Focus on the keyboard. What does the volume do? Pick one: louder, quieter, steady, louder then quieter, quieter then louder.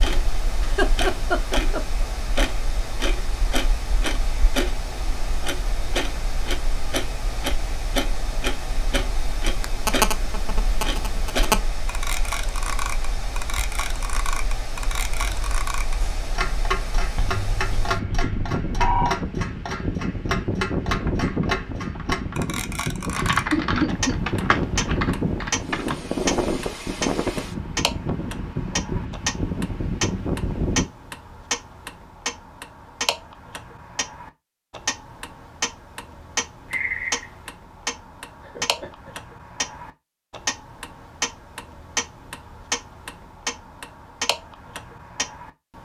louder then quieter.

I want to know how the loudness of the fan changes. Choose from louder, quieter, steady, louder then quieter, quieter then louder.
louder.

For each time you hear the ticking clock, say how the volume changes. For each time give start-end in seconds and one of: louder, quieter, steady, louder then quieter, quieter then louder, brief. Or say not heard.
0.0-45.8 steady.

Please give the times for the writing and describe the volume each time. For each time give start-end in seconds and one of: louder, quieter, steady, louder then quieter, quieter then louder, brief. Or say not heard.
not heard.